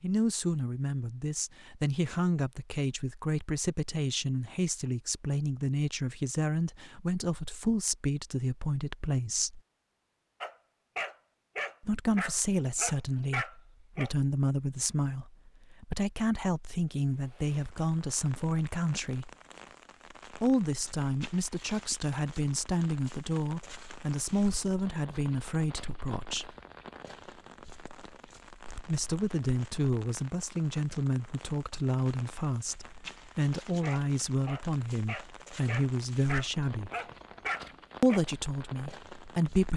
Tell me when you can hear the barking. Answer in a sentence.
The barking can be heard from 10.4 to 14.1 s and from 33.8 to 38.2 s.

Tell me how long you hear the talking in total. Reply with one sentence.
You can hear the talking for 33 seconds altogether.